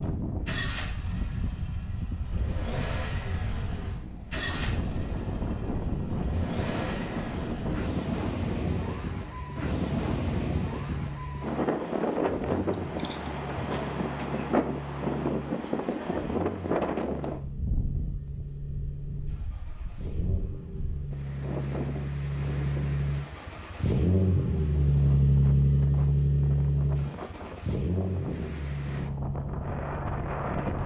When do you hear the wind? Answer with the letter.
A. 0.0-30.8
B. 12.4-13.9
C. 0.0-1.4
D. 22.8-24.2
A.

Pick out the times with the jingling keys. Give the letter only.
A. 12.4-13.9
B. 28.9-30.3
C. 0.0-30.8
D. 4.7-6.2
A.